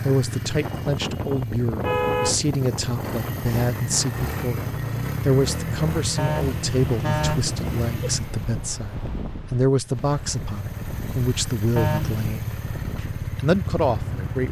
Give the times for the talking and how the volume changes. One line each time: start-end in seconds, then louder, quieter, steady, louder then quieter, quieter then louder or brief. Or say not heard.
0.0-14.4 steady.